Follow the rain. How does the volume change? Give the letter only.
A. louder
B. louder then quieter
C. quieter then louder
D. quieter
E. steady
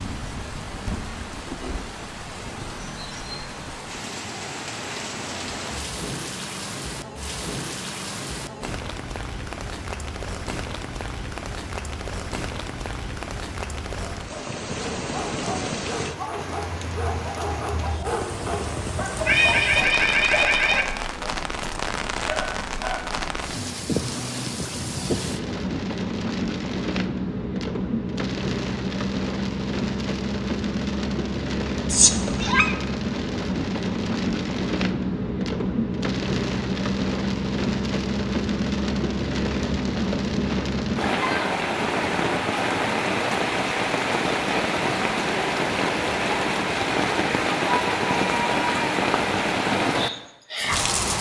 A.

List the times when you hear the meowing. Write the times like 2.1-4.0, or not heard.
19.1-20.9, 31.9-32.8.